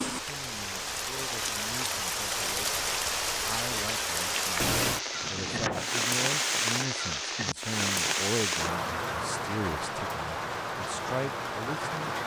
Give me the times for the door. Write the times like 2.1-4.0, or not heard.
5.2-5.9.